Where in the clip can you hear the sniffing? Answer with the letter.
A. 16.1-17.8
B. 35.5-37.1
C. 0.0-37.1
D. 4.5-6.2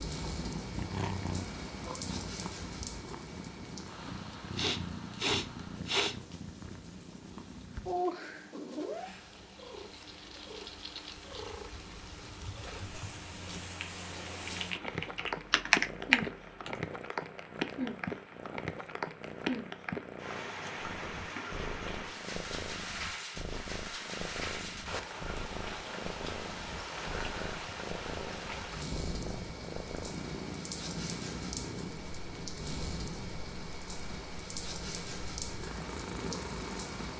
D.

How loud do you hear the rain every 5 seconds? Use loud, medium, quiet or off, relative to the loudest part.
medium, quiet, medium, loud, loud, loud, loud, loud.